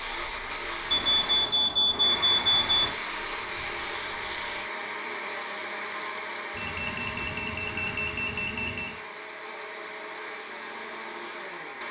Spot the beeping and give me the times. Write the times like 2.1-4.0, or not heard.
0.9-2.9, 6.5-9.0.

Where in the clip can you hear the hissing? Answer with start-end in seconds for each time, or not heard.
0.0-4.7.